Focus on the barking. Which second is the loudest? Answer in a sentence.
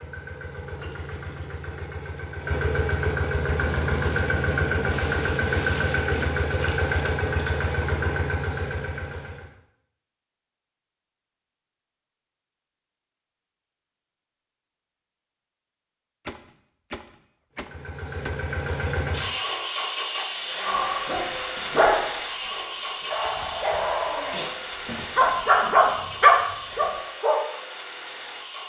The volume of the barking peaks at 26 seconds.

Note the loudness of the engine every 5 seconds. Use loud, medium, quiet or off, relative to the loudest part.
loud, loud, off, loud, loud, medium.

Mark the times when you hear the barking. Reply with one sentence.
The barking can be heard from 20.6 to 27.4 s.